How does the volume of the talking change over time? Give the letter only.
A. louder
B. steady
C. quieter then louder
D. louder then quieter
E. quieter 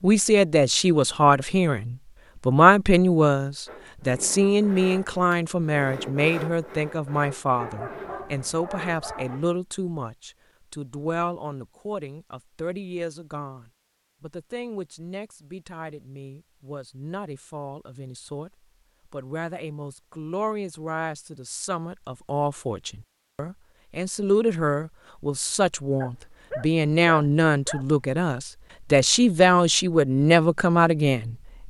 C.